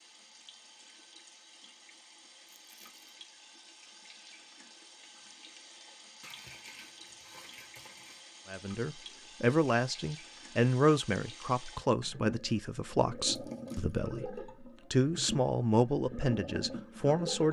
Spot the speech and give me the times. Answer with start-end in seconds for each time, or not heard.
8.5-17.4.